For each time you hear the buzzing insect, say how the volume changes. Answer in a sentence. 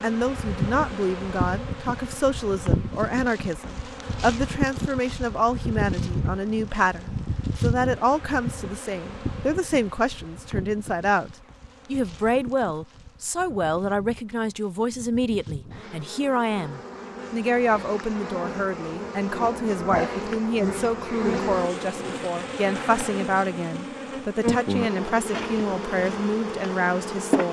You can hear the buzzing insect from 0.0 to 27.4 s, getting quieter then louder.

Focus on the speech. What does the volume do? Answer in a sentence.
The volume of the speech stays about the same.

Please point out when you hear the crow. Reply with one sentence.
The crow can't be heard in this clip.